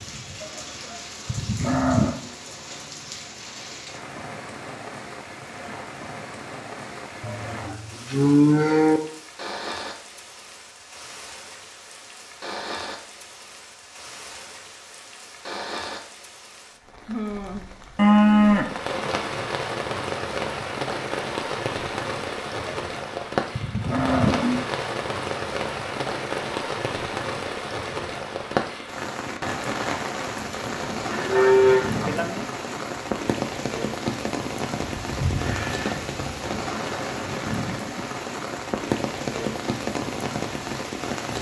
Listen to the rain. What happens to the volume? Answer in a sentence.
The loudness of the rain goes up.